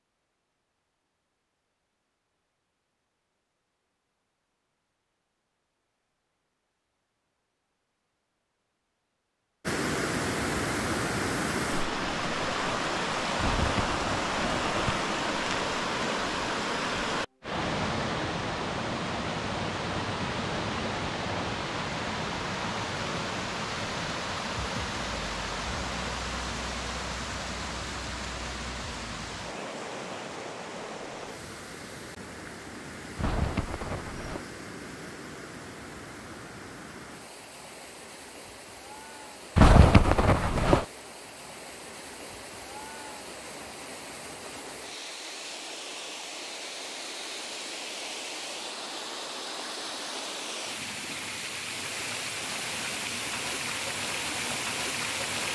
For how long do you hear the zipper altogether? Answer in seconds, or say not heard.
4 s.